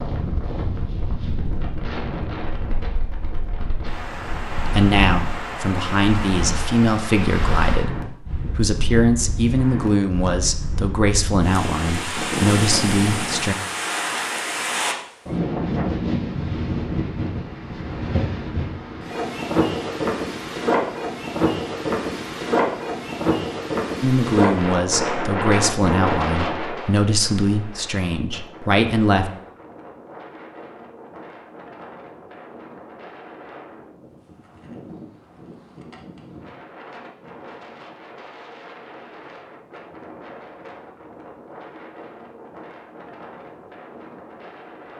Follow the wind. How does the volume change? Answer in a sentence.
The volume of the wind goes up, then down.